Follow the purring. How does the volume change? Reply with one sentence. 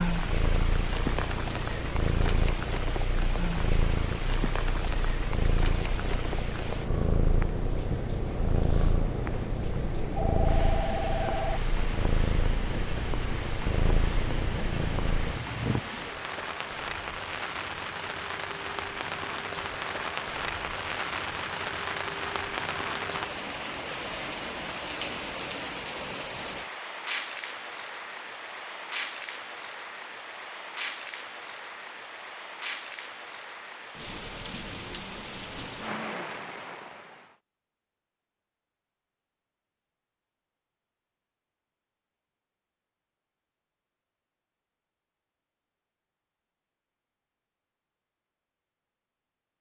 The volume of the purring stays about the same.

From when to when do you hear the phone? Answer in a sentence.
The phone can be heard from 10.2 to 11.6 s.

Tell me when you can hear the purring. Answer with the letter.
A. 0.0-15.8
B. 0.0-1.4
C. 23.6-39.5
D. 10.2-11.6
A.